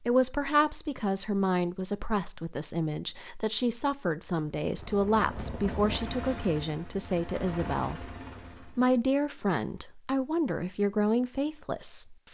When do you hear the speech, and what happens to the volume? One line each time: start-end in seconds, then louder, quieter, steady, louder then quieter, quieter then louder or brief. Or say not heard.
0.0-12.2 steady.